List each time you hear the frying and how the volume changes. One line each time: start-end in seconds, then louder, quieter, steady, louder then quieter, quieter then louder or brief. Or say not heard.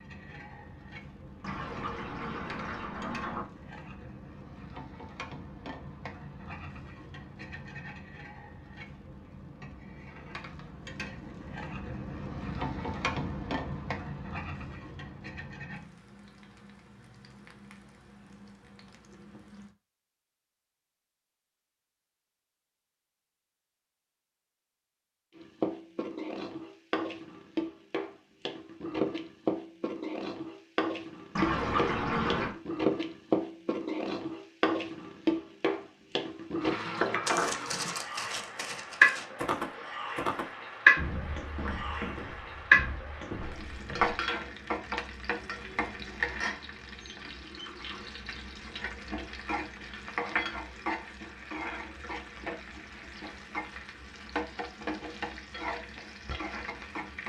0.0-19.8 louder then quieter
25.4-57.2 louder then quieter.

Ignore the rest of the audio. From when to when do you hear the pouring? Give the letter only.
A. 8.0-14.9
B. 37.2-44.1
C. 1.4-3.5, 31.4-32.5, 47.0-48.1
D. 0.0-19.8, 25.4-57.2
C.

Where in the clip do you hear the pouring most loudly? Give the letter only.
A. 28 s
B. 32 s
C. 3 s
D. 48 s
B.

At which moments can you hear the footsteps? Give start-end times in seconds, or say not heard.
37.2-44.1.